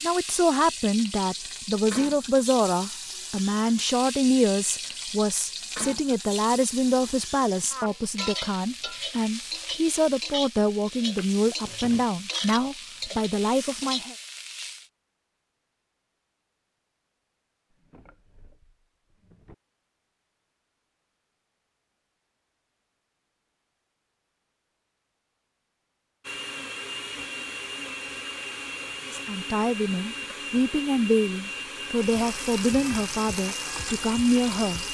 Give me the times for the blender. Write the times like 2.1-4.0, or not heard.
26.2-34.8.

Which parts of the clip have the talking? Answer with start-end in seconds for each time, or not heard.
0.0-14.2, 29.1-34.8.